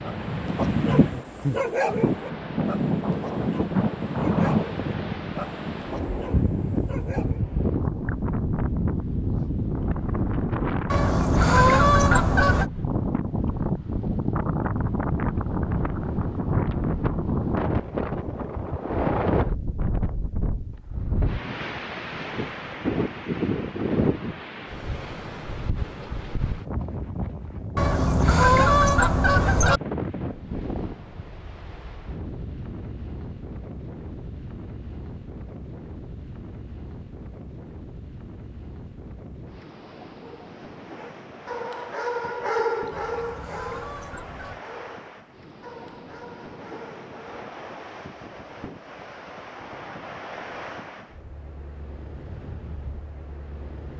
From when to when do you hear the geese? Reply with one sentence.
You can hear the geese from 10.8 to 12.7 s, from 27.8 to 29.8 s and from 42.9 to 44.6 s.